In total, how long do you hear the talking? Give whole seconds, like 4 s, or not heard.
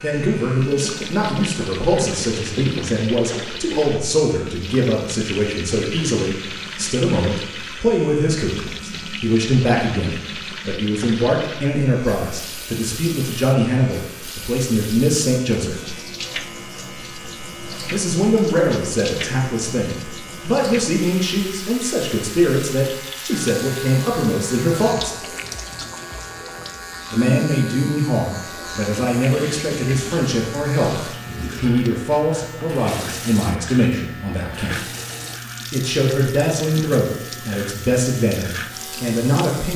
35 s.